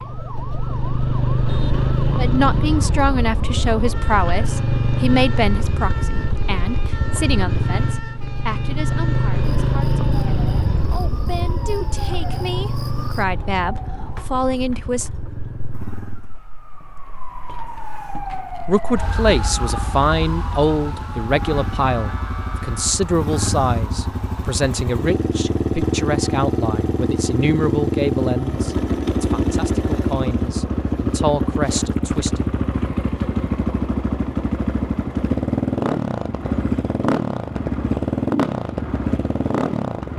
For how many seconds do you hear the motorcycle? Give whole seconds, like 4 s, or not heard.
38 s.